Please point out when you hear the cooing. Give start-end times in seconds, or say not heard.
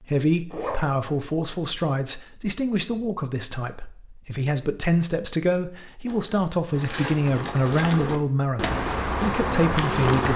6.7-10.3.